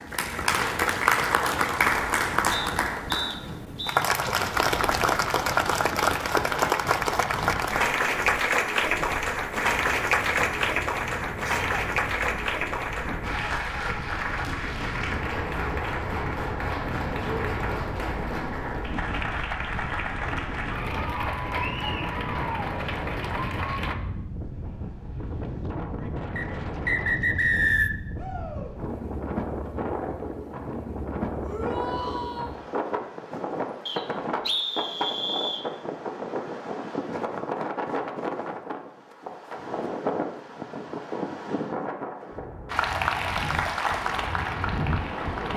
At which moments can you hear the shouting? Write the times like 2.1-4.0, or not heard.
11.4-11.8, 28.1-28.8, 31.4-32.5.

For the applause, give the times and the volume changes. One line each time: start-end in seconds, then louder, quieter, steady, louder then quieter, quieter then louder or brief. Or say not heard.
0.0-23.9 quieter
42.6-45.5 brief.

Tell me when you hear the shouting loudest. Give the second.
32 s.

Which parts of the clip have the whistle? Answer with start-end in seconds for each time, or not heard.
2.5-4.0, 26.4-27.9, 33.9-35.6.